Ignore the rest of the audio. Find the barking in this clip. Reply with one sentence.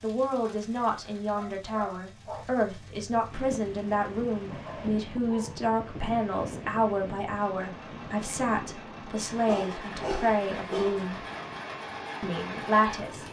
The barking can be heard from 0.4 to 2.5 s, from 4.5 to 5.7 s and from 9.4 to 11.1 s.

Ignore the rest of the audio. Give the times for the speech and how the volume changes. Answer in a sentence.
The speech can be heard from 0.0 to 11.2 s, at a steady volume; and briefly from 12.2 to 13.2 s.